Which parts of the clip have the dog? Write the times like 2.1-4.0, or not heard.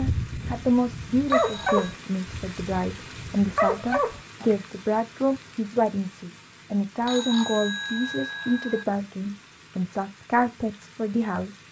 0.0-4.5.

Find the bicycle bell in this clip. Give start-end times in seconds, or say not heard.
1.2-1.9, 7.0-8.8.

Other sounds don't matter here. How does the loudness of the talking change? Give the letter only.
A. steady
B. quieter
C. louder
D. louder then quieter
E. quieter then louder
A.